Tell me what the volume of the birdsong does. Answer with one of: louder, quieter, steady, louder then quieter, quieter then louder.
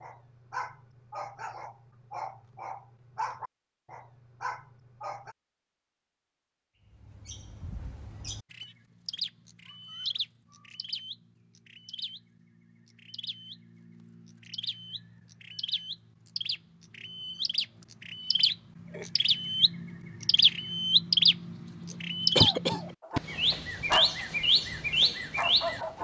quieter then louder.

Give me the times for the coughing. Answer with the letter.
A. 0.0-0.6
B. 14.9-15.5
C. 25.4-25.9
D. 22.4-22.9
D.